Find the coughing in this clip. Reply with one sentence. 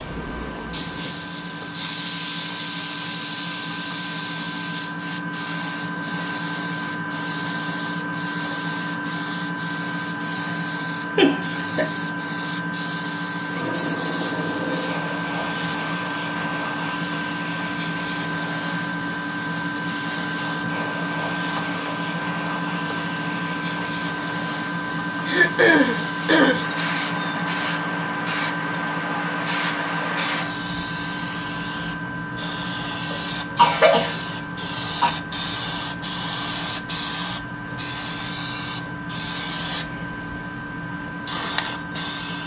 You can hear the coughing from 11.2 to 11.9 s, from 25.2 to 26.6 s and from 33.1 to 35.1 s.